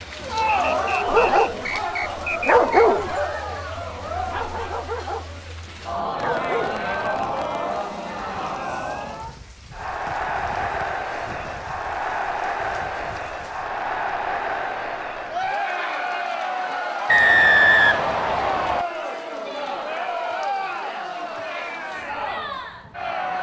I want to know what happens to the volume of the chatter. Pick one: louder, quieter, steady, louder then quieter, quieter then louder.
steady.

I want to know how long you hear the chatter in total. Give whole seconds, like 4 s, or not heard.
23 s.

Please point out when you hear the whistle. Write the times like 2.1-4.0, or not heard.
0.5-2.9, 17.1-18.9.